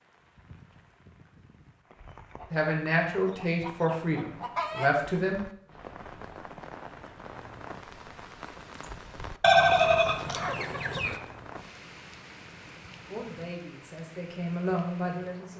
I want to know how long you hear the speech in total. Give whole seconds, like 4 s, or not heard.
5 s.